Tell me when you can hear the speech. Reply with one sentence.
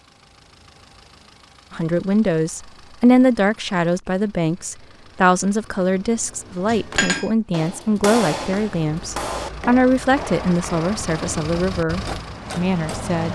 You can hear the speech from 1.7 to 13.2 s.